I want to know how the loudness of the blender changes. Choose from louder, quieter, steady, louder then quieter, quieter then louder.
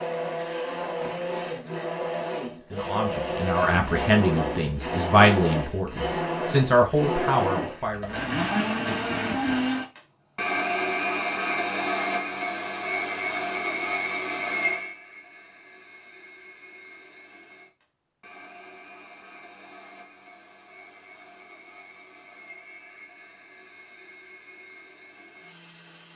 quieter.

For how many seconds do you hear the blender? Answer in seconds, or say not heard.
26 s.